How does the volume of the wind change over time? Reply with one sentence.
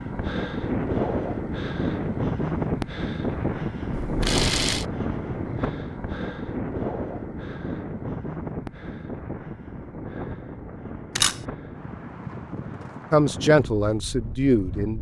The volume of the wind goes down.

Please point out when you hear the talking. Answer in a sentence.
You can hear the talking from 13.1 to 14.9 s.